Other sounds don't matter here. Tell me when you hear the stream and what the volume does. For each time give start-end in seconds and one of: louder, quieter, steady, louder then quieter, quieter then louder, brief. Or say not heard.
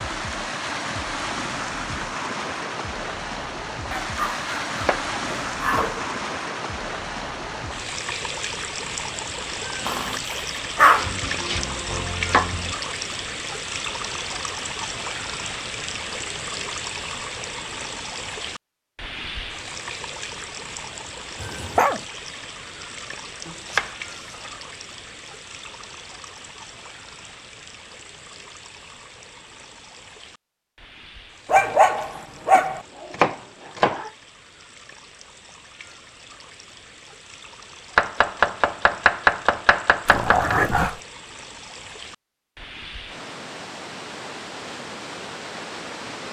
0.0-46.2 quieter then louder.